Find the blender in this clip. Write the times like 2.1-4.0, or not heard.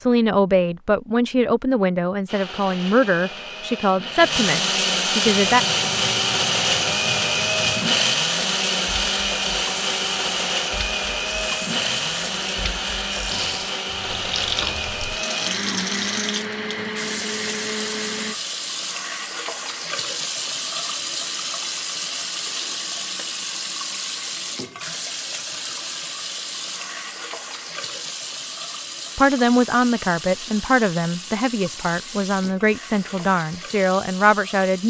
2.2-18.4.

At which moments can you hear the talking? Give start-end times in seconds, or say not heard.
0.0-5.7, 29.1-34.8.